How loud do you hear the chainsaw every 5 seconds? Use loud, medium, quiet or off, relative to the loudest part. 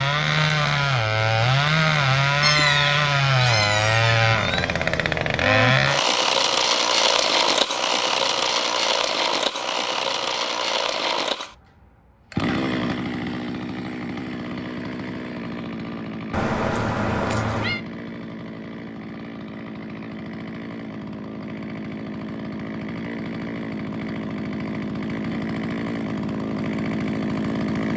loud, loud, medium, quiet, medium, medium.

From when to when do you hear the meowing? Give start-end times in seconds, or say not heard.
2.4-4.8, 16.3-17.8.